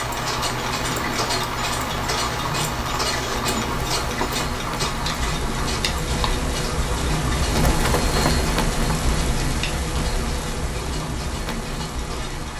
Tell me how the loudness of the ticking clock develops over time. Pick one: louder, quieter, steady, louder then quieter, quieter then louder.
quieter.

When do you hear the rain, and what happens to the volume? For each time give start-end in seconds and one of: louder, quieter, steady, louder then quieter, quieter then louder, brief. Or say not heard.
0.0-12.5 louder then quieter.